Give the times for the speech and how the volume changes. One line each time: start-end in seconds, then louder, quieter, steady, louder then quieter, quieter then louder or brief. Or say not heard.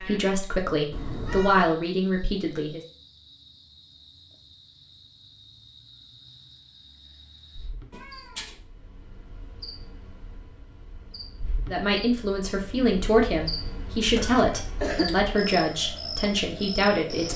0.0-2.8 brief
11.7-17.3 steady.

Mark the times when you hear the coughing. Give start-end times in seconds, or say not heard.
14.2-15.2.